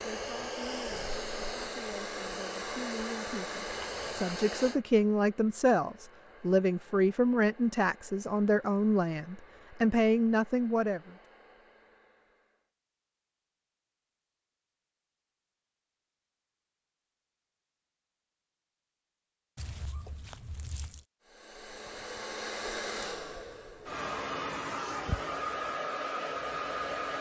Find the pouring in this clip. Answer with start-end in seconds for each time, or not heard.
3.7-4.2, 19.6-21.1.